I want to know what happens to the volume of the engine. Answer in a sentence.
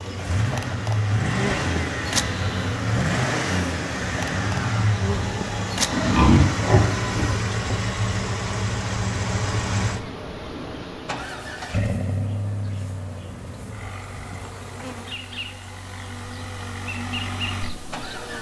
The loudness of the engine goes down.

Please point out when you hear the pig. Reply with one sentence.
The pig can be heard from 5.9 to 7.3 s.